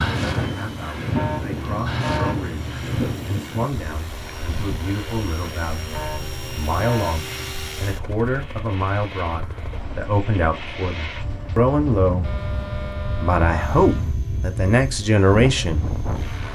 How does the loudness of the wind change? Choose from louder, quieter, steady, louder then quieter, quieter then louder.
quieter then louder.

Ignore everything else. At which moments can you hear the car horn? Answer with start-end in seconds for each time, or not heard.
1.1-3.0, 5.9-7.5, 12.2-14.2.